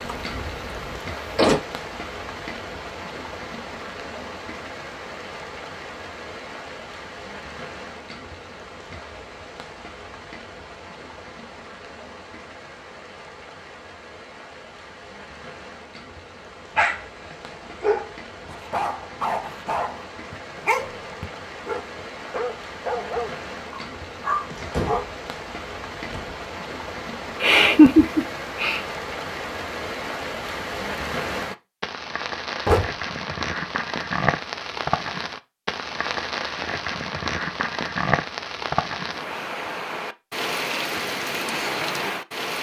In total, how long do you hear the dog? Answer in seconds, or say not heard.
8 s.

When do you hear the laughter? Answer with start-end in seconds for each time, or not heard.
27.4-28.8.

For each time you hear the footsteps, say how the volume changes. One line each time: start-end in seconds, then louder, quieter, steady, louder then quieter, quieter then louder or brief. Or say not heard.
not heard.